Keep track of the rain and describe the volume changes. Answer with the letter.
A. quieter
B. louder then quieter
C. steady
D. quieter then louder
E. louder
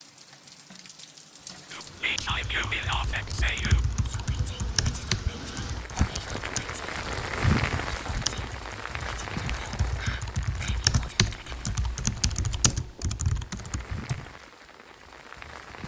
B.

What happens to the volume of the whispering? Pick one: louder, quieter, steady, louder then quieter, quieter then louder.
quieter.